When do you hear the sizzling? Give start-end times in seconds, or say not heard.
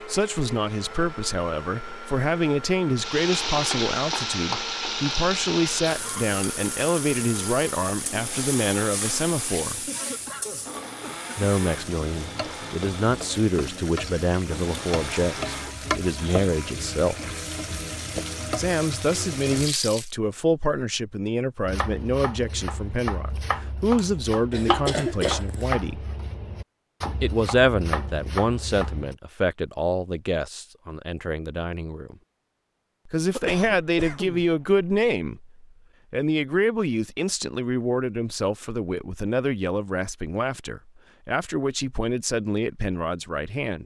3.0-20.1.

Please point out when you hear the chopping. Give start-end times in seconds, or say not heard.
21.6-29.1.